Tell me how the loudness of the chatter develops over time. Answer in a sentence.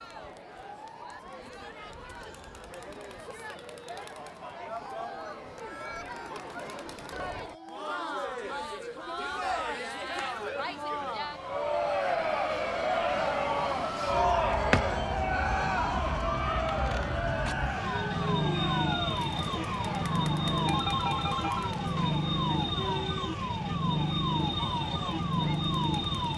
The volume of the chatter goes up, then down.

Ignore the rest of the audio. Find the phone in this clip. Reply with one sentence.
You can hear the phone from 20.6 to 22.2 s.